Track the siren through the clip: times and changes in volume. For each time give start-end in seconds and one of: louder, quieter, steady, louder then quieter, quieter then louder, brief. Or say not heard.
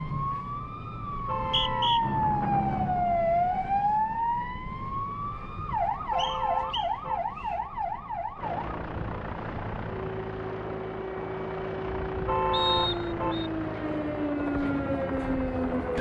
0.0-15.9 quieter then louder.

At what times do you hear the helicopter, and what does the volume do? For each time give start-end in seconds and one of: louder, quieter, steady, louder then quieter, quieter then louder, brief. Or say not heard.
2.0-4.2 brief
8.3-15.9 steady.